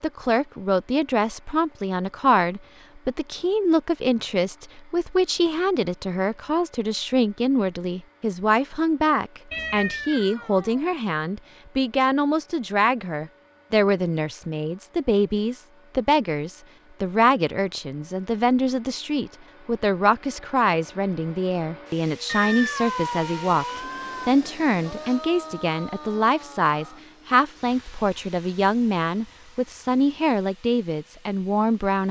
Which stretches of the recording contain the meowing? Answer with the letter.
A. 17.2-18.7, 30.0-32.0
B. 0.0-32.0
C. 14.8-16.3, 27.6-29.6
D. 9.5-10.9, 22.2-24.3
D.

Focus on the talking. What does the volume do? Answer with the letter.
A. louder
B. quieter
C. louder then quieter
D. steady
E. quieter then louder
D.